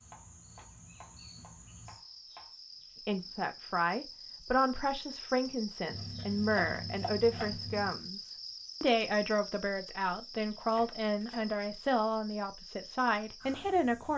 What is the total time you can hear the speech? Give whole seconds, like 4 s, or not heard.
11 s.